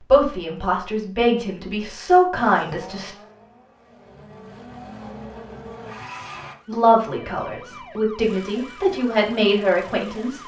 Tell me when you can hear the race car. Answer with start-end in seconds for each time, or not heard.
2.4-6.5.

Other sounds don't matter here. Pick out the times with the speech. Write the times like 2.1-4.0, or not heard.
0.1-3.1, 6.7-10.4.